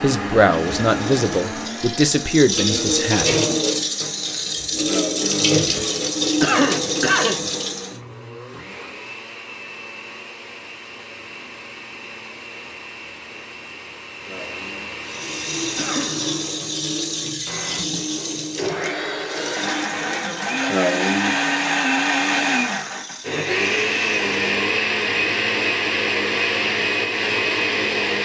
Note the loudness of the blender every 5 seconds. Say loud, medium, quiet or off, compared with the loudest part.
medium, quiet, quiet, medium, loud, loud.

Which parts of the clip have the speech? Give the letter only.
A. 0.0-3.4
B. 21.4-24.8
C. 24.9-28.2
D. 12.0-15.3
A.